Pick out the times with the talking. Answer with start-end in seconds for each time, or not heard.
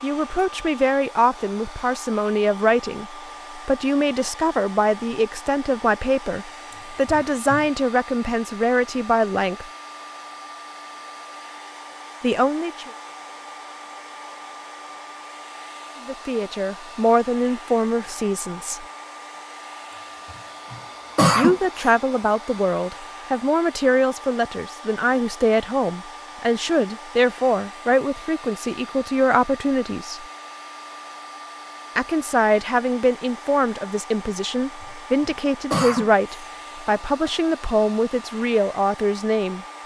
0.0-9.7, 12.2-12.9, 16.1-18.9, 21.4-30.2, 31.9-39.6.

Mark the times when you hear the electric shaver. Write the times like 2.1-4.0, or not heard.
not heard.